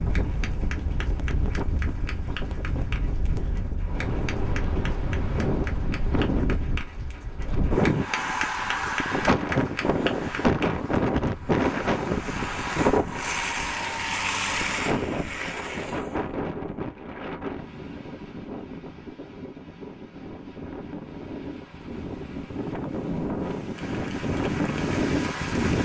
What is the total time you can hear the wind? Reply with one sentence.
You can hear the wind for 26 seconds altogether.